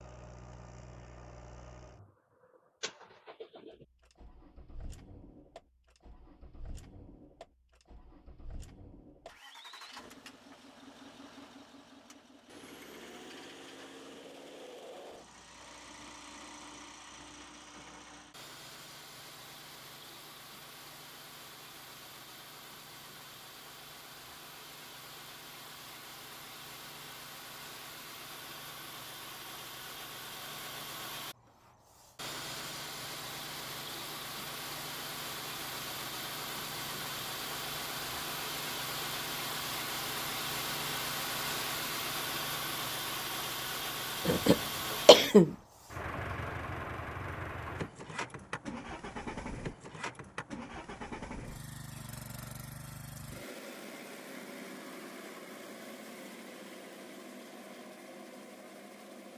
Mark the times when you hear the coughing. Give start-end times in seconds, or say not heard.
44.2-45.5.